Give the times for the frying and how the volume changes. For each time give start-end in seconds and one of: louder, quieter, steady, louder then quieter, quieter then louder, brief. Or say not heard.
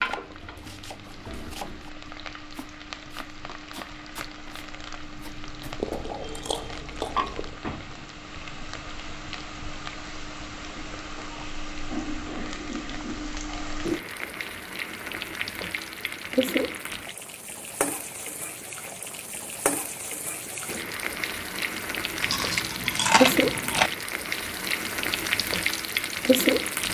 0.0-26.8 louder.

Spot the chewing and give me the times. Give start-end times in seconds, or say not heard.
5.8-7.5, 22.2-23.9.